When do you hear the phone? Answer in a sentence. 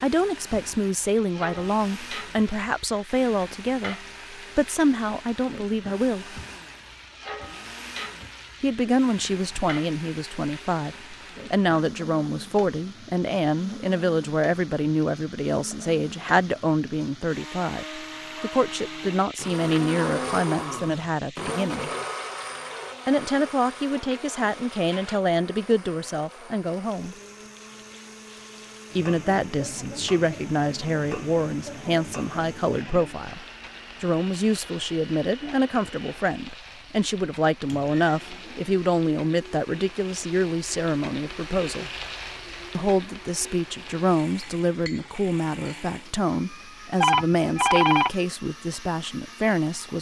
The phone can be heard from 47.0 to 48.1 s.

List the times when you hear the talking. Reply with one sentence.
You can hear the talking from 0.0 to 6.4 s, from 8.6 to 21.9 s, from 23.1 to 27.1 s, from 28.9 to 41.9 s and from 42.8 to 49.9 s.